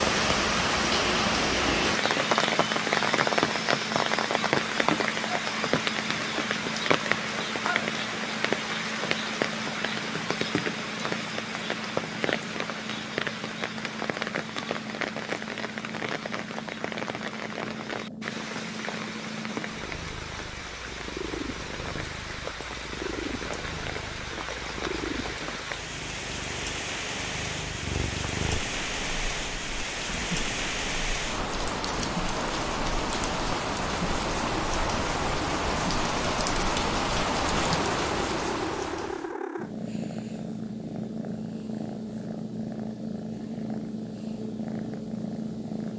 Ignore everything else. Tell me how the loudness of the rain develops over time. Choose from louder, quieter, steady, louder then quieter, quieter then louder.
quieter then louder.